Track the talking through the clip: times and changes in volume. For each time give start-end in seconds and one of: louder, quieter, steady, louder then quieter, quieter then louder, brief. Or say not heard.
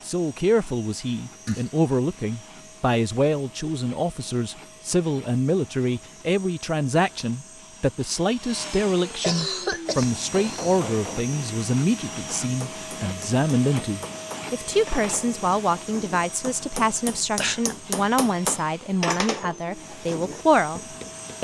0.1-20.8 steady.